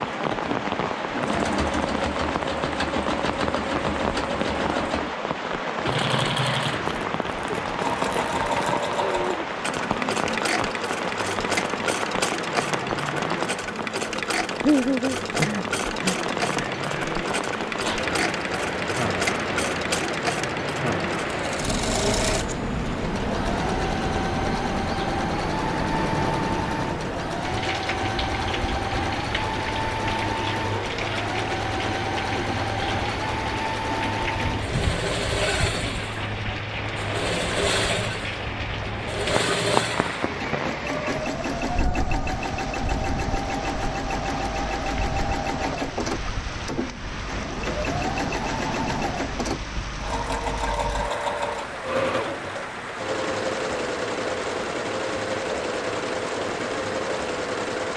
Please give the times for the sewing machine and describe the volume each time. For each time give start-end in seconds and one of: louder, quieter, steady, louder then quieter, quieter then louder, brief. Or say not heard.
0.0-57.9 steady.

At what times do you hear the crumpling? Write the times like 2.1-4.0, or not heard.
6.9-8.8.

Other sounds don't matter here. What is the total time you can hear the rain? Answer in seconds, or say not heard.
58 s.